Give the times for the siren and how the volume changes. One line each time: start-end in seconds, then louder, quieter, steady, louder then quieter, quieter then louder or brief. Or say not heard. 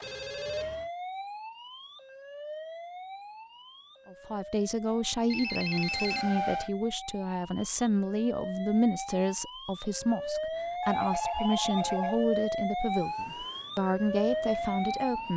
0.1-15.3 quieter then louder.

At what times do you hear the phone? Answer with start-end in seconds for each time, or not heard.
0.0-0.9, 5.3-6.7, 10.8-12.2.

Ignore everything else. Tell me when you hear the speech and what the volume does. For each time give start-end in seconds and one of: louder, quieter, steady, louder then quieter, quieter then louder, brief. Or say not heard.
4.0-15.3 steady.